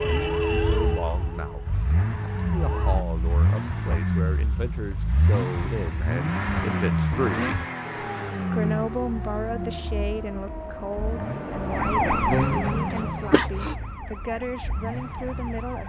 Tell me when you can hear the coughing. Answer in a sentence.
You can hear the coughing from 12.9 to 13.8 s.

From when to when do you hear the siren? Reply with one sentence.
You can hear the siren from 0.0 to 3.0 s and from 7.8 to 15.8 s.